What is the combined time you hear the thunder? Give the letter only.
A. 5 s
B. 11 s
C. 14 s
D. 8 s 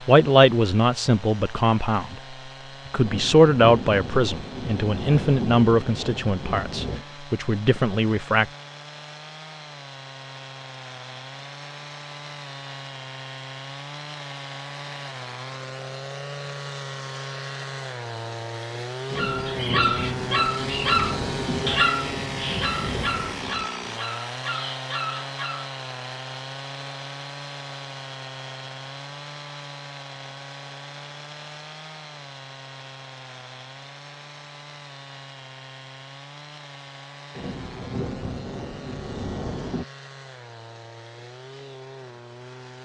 B.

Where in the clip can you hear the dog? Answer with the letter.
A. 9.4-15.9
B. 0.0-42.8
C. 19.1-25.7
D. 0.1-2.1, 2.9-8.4
C.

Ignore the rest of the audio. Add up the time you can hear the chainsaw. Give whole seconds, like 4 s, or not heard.
43 s.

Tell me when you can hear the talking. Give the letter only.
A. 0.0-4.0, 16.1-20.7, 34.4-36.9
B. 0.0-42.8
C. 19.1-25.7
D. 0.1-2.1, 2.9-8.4
D.